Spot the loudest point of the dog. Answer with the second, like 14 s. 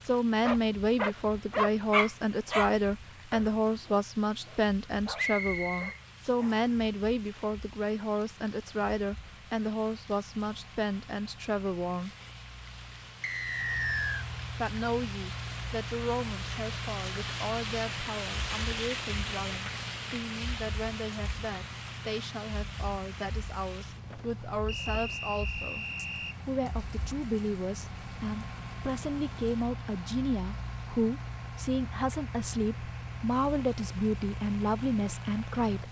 2 s.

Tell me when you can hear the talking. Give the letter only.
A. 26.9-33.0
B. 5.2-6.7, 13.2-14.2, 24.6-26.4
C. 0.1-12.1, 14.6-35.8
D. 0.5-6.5
C.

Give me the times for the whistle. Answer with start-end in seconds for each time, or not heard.
5.2-6.7, 13.2-14.2, 24.6-26.4.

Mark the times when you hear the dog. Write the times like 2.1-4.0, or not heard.
0.5-6.5.